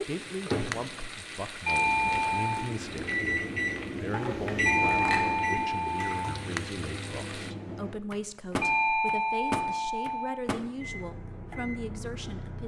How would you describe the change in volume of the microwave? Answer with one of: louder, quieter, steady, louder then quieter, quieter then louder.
louder then quieter.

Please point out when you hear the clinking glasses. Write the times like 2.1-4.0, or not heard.
4.1-5.3.